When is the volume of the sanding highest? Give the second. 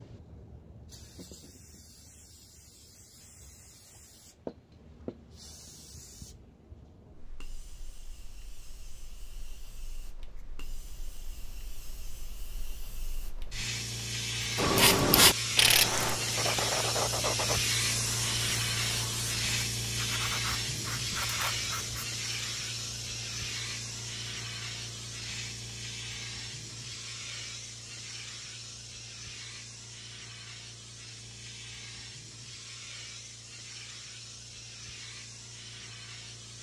15 s.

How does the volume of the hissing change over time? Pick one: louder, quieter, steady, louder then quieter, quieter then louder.
louder then quieter.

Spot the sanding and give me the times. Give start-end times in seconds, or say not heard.
14.6-22.1.